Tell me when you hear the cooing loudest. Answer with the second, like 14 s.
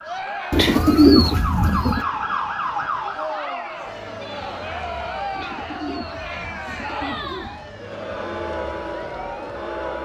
1 s.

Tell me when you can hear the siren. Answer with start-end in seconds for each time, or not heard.
0.0-5.5, 7.3-9.9.